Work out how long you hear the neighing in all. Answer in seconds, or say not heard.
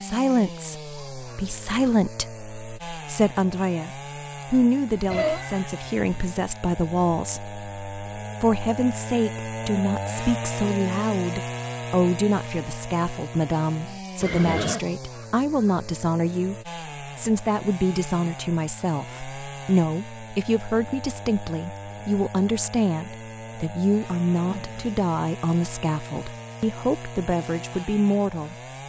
2 s.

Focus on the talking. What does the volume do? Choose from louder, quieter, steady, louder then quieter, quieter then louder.
steady.